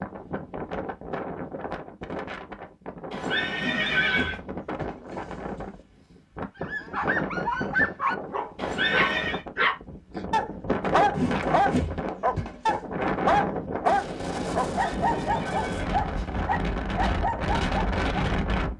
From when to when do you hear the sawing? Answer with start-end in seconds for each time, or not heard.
3.5-6.0, 11.2-12.8.